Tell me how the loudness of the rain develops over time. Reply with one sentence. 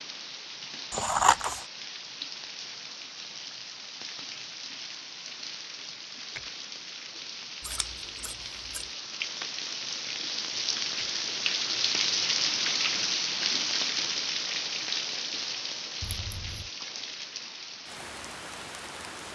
The loudness of the rain goes up, then down.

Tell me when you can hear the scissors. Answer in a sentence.
The scissors can be heard from 0.9 to 1.6 s, from 7.6 to 8.9 s and from 16.0 to 16.7 s.